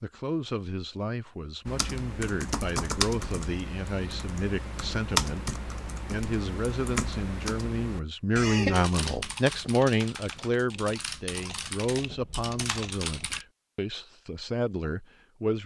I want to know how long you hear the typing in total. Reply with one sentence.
The typing can be heard for 12 seconds in total.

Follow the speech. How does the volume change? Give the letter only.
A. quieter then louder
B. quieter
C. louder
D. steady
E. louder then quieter
E.